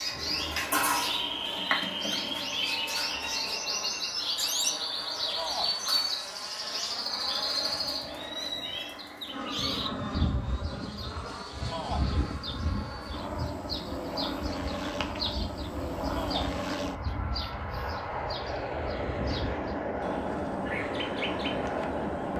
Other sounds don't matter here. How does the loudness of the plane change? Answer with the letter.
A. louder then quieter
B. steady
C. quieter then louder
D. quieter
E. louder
E.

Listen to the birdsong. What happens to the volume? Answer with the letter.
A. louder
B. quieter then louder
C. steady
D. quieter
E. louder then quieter
D.